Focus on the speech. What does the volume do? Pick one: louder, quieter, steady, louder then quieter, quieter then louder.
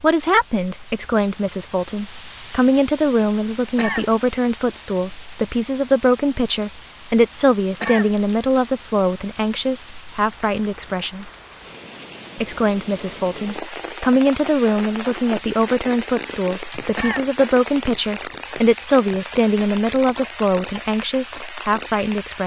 steady.